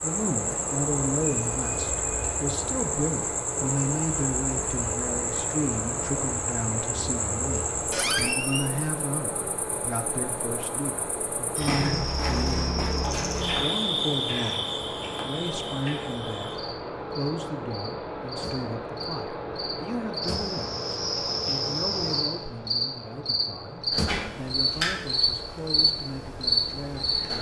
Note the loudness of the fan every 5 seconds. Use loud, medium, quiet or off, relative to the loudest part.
loud, loud, loud, loud, loud, medium.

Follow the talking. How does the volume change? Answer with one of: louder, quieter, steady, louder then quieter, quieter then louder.
quieter.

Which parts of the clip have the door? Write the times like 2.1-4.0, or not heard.
7.9-8.7.